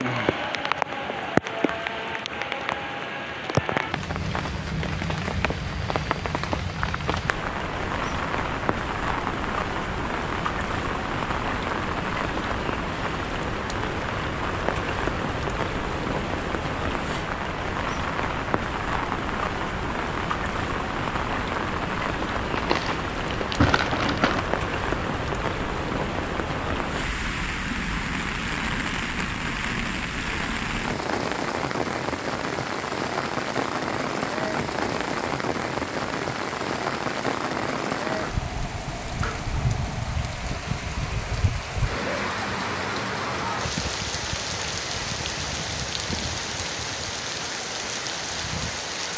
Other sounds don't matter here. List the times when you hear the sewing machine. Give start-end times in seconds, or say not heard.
not heard.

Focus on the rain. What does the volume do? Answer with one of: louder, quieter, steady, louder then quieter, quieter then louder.
steady.